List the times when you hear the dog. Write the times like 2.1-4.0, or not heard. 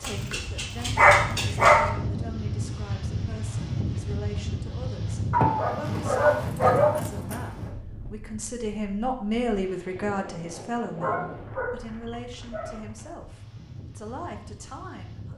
0.0-1.9, 5.3-7.4, 11.0-12.8.